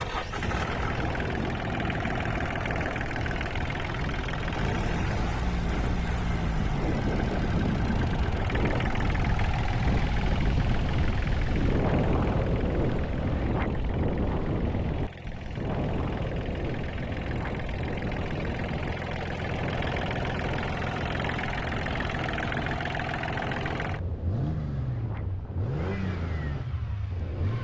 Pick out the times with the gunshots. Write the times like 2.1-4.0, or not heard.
not heard.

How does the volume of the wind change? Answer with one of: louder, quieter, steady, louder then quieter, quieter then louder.
louder then quieter.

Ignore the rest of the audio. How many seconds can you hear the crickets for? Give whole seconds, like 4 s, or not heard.
not heard.